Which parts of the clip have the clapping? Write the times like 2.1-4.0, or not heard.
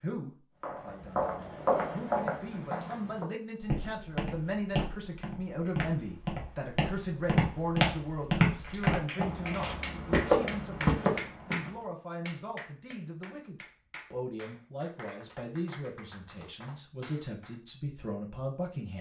8.6-17.6.